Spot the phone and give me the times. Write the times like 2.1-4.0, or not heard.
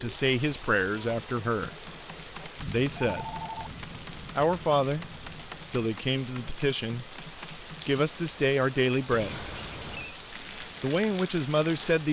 2.9-3.8, 9.1-10.2.